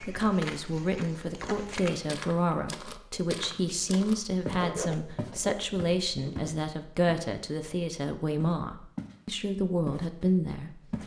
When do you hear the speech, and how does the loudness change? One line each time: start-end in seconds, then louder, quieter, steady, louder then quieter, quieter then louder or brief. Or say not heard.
0.1-11.0 steady.